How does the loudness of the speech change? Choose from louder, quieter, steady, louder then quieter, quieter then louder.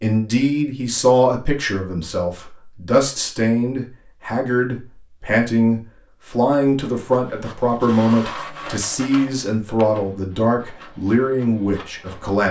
steady.